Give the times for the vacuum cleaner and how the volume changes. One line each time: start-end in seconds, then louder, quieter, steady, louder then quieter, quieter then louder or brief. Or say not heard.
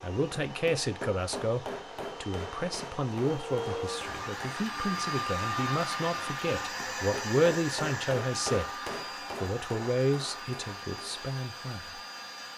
0.0-12.5 louder then quieter.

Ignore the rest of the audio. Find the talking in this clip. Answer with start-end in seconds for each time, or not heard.
0.0-8.7, 9.4-12.0.